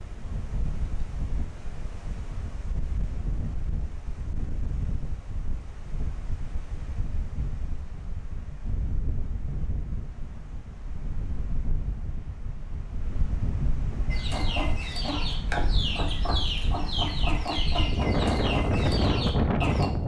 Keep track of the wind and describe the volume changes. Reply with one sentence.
The volume of the wind goes up.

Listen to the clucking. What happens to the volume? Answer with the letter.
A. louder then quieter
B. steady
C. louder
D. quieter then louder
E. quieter
B.